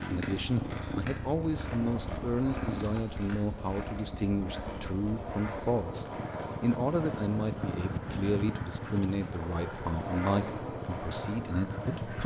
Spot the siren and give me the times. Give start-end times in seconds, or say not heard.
not heard.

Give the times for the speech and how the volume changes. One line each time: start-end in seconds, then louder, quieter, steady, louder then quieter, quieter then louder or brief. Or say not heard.
0.0-12.2 steady.